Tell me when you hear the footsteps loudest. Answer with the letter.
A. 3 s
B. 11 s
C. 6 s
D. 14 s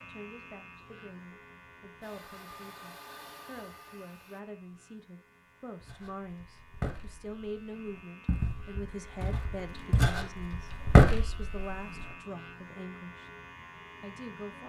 B.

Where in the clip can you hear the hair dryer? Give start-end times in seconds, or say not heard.
2.0-4.4.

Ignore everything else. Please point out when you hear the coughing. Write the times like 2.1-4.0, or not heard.
not heard.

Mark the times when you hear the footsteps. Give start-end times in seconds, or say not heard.
5.8-12.1.